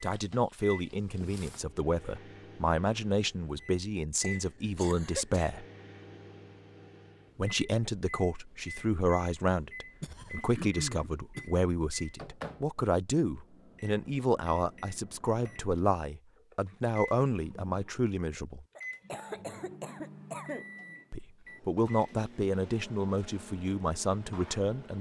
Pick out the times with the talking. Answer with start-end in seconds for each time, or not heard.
0.0-5.7, 7.3-18.6, 21.1-24.9.